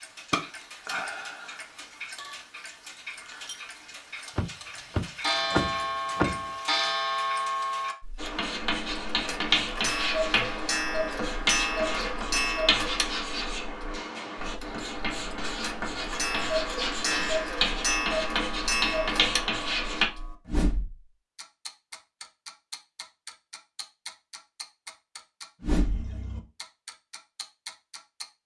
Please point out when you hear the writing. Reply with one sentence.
You can hear the writing from 8.2 to 20.1 s.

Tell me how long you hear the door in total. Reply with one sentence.
The door can be heard for 2 seconds in total.